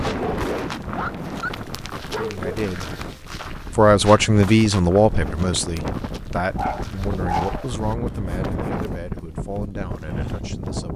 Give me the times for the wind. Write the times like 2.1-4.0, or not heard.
0.0-10.9.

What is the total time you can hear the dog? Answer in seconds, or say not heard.
4 s.